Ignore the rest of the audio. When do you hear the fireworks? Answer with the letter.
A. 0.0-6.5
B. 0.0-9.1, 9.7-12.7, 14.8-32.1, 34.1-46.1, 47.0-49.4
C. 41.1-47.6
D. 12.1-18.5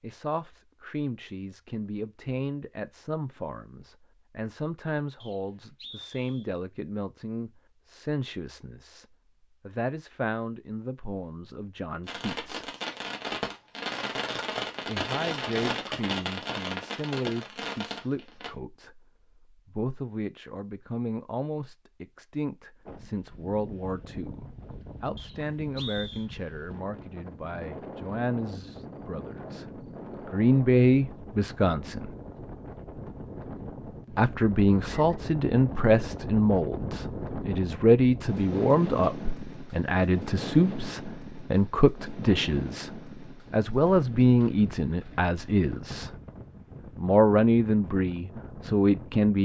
D.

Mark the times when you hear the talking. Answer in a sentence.
You can hear the talking from 0.0 to 9.1 s, from 9.7 to 12.7 s, from 14.8 to 32.1 s, from 34.1 to 46.1 s and from 47.0 to 49.4 s.